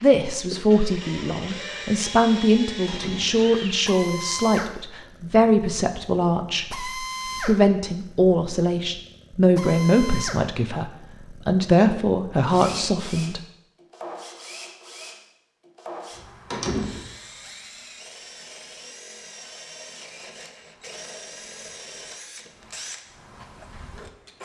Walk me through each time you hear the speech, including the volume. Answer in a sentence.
You can hear the speech from 0.0 to 13.4 s, at a steady volume.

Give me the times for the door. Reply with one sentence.
The door can be heard from 2.9 to 3.5 s, from 12.6 to 13.0 s and from 16.5 to 17.1 s.